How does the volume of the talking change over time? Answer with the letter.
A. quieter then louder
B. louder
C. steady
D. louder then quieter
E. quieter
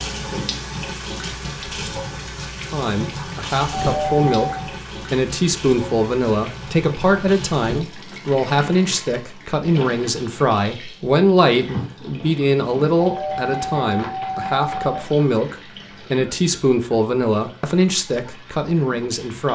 C.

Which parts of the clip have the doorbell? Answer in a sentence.
You can hear the doorbell from 3.7 to 4.5 s and from 12.9 to 15.0 s.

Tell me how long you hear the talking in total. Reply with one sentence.
You can hear the talking for 17 seconds altogether.